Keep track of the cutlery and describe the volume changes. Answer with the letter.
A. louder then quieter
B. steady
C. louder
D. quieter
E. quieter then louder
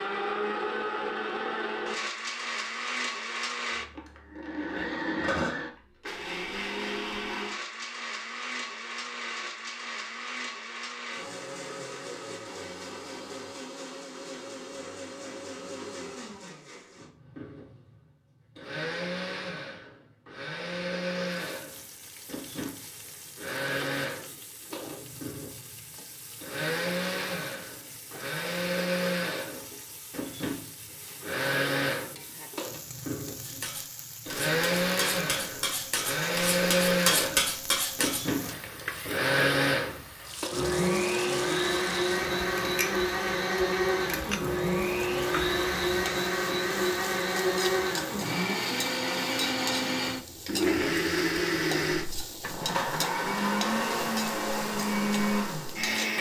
C.